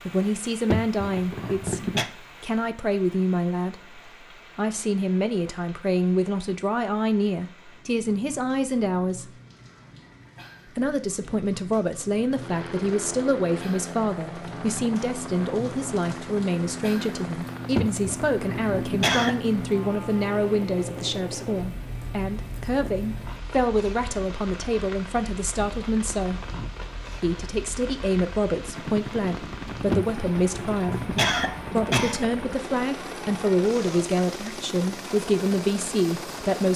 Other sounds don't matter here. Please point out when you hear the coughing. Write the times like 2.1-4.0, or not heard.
0.7-2.0, 17.8-19.4, 29.9-32.2.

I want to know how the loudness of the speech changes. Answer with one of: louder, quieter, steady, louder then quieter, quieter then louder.
steady.